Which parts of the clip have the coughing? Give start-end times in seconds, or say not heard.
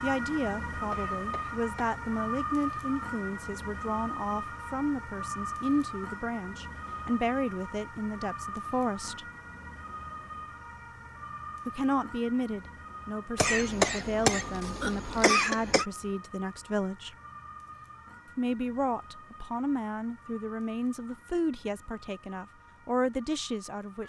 0.9-2.0, 13.3-15.8.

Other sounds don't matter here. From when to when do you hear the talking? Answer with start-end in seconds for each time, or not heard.
0.0-9.2, 11.7-17.1, 18.4-24.0.